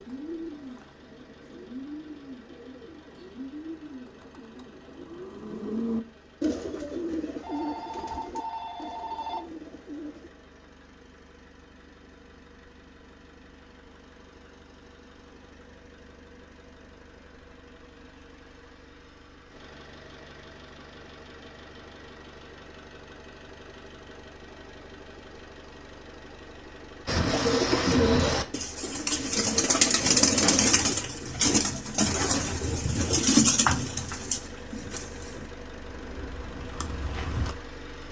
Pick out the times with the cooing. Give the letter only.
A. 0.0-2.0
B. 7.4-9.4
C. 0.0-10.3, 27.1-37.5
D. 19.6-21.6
C.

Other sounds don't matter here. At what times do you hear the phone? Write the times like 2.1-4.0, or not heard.
7.4-9.4.